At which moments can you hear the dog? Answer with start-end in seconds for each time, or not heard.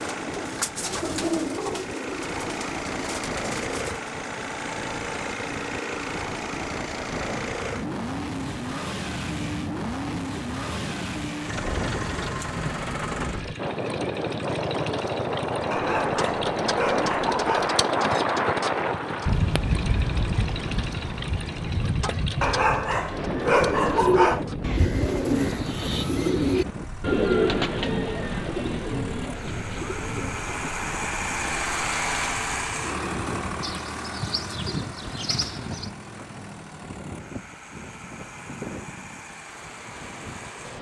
15.7-17.8, 22.4-24.4.